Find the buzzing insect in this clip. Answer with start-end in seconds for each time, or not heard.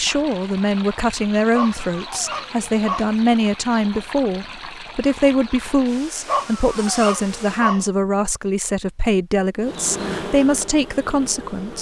9.6-11.7.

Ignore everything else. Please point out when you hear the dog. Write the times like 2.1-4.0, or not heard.
1.5-3.1, 6.2-7.8.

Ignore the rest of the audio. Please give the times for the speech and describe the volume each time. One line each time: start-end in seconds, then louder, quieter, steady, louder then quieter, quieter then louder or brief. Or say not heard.
0.0-11.7 steady.